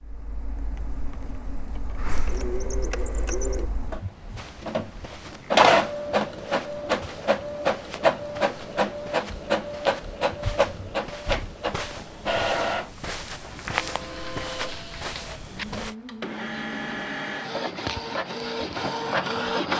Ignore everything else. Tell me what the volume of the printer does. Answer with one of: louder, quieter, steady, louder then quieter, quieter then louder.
louder then quieter.